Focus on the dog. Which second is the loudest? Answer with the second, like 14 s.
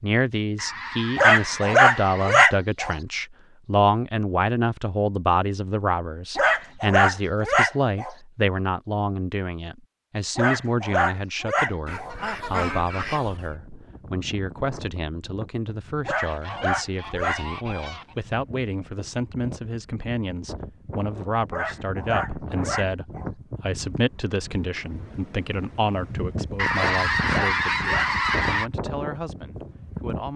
2 s.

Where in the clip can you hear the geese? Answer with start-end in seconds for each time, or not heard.
0.6-2.5, 11.8-13.5, 16.1-18.2, 26.6-28.7.